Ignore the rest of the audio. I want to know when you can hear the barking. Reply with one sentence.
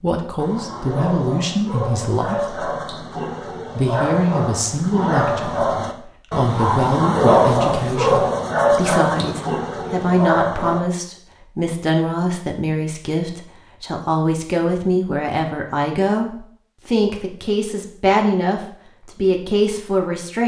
You can hear the barking from 0.3 to 10.8 s.